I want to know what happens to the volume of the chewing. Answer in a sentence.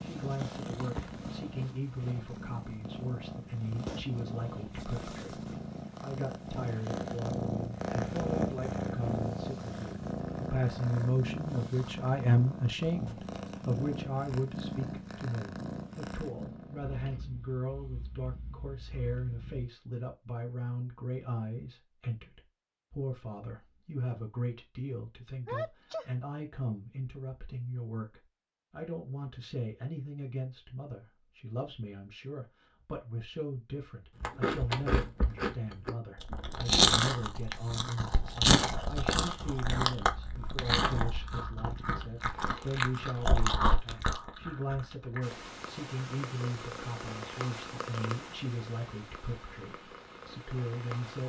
The volume of the chewing goes up, then down.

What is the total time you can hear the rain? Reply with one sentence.
You can't hear the rain here.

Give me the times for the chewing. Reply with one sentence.
The chewing can be heard from 34.2 to 45.4 s.